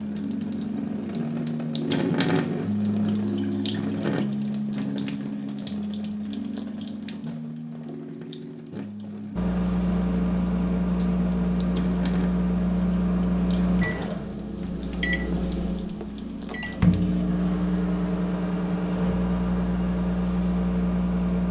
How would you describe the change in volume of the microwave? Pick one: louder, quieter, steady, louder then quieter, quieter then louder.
quieter then louder.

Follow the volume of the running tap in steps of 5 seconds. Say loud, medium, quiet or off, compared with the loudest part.
loud, medium, medium, medium, off.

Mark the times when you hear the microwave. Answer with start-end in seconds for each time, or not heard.
9.3-21.4.